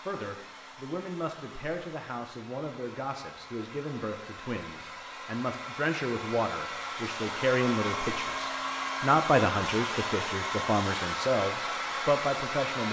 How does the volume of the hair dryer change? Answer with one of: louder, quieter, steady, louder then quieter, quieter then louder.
louder.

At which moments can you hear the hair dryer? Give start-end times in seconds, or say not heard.
0.0-12.8.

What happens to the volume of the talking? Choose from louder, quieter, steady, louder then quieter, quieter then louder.
louder.